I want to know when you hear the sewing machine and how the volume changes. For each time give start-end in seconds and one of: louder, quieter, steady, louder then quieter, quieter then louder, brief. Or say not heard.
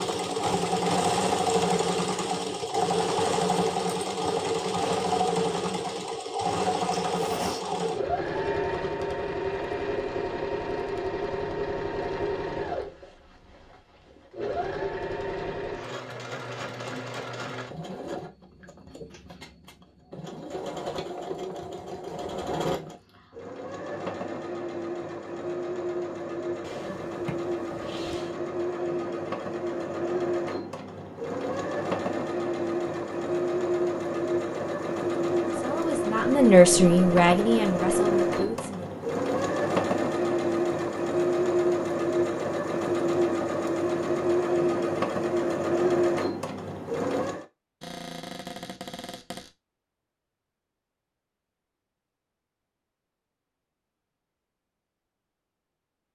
0.0-47.5 quieter then louder.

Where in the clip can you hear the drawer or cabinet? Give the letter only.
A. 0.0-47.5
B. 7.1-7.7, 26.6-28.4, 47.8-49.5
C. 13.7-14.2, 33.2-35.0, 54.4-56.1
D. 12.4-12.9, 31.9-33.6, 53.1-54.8
B.